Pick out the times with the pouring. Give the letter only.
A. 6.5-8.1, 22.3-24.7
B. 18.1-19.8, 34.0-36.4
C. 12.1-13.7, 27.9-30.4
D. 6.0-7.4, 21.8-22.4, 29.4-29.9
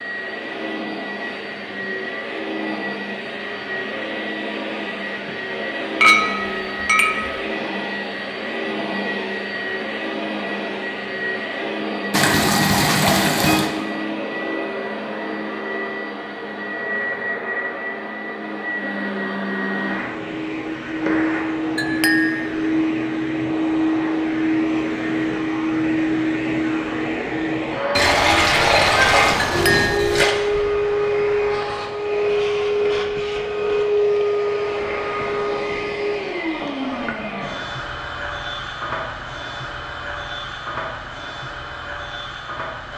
C.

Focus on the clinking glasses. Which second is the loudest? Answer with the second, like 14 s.
6 s.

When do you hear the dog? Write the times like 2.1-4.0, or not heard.
not heard.